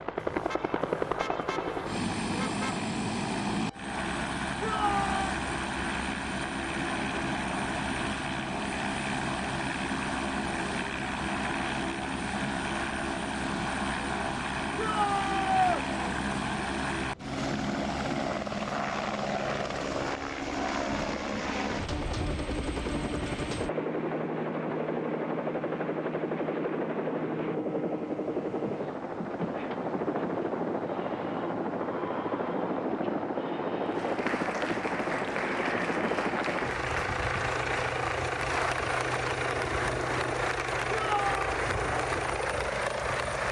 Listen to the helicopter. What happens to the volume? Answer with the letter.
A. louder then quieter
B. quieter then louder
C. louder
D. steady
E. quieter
D.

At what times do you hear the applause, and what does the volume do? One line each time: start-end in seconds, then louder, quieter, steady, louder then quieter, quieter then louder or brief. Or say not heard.
33.9-43.4 steady.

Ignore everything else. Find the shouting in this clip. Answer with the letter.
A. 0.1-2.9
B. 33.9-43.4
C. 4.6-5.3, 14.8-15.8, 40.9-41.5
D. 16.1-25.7
C.